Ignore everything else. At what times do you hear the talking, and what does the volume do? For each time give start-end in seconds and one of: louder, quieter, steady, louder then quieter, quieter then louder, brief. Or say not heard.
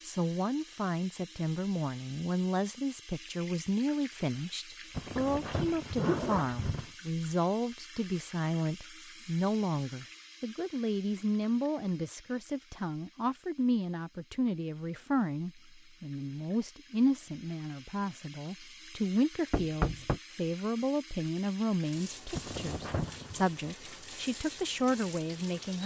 0.1-25.8 steady.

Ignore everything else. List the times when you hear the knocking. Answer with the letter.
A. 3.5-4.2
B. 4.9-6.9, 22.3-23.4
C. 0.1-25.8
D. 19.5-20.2
D.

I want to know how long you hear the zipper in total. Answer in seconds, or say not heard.
3 s.